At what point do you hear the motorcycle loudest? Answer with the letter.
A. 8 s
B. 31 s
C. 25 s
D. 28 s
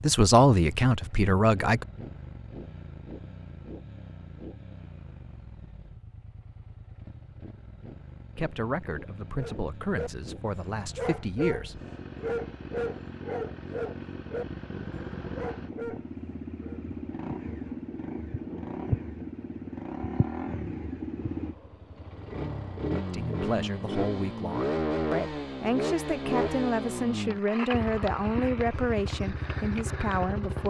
C.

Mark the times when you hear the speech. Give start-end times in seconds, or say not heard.
0.0-1.9, 8.3-11.8, 23.1-30.6.